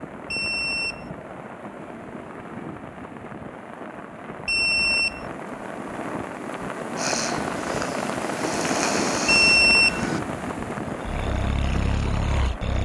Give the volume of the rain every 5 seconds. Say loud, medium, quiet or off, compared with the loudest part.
medium, loud, loud.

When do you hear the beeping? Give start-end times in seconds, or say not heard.
0.3-1.1, 4.5-5.2, 9.2-10.1.